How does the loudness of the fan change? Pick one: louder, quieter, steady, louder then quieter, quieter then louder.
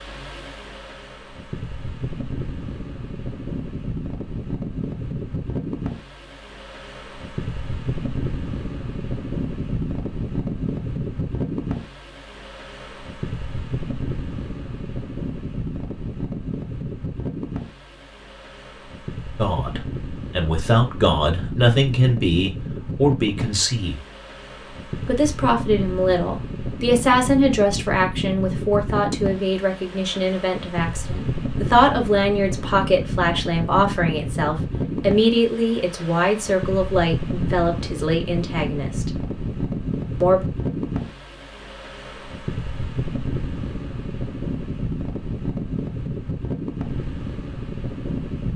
steady.